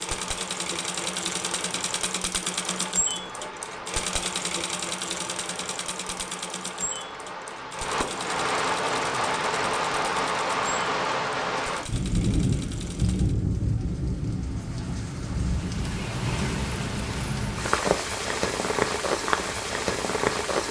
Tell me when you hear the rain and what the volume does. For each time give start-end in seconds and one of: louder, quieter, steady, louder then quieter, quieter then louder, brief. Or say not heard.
0.0-20.6 louder.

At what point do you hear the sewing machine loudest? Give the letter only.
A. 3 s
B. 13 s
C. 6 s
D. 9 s
A.